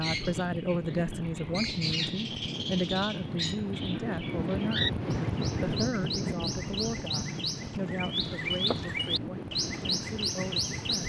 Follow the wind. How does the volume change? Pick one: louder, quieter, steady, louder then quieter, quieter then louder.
louder then quieter.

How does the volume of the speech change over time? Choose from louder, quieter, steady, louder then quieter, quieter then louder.
quieter.